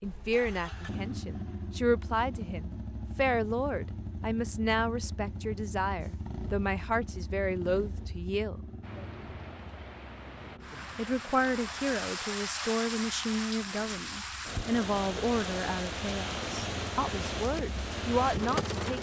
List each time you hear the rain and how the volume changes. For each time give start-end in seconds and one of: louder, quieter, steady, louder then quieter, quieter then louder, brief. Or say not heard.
8.8-18.9 louder.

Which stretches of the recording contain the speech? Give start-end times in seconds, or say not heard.
0.0-8.6, 10.9-18.9.